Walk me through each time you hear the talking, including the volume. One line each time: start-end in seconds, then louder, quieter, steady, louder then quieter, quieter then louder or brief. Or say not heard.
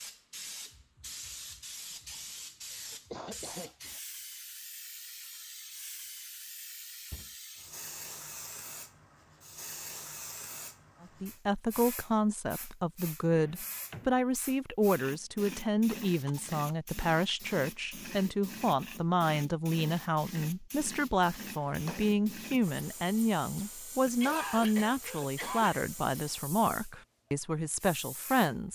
11.0-28.7 steady.